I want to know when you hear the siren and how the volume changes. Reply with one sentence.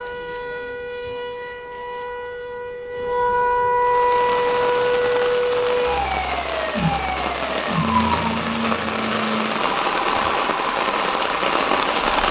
The siren can be heard from 0.0 to 12.2 s, getting louder then quieter.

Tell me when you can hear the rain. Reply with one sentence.
You can hear the rain from 3.8 to 12.2 s.